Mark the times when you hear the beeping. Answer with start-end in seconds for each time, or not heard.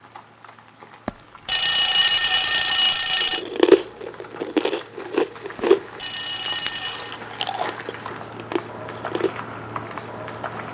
1.1-3.5, 5.5-7.2.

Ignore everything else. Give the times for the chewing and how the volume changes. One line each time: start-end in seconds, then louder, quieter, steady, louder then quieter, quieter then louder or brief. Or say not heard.
3.3-9.3 quieter.